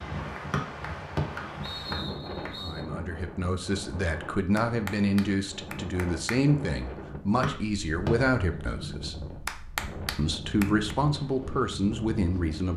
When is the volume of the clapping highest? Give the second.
10 s.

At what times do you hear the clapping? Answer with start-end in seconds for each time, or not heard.
0.3-2.5, 4.5-6.4, 9.4-10.7.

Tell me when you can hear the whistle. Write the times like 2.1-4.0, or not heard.
0.5-2.8, 7.4-8.1.